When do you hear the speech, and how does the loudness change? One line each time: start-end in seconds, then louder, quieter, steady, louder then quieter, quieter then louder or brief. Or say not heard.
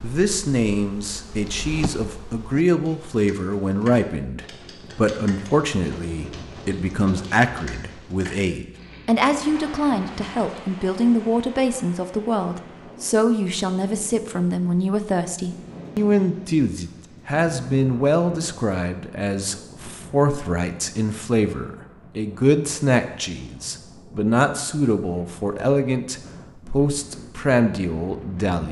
0.0-28.6 steady.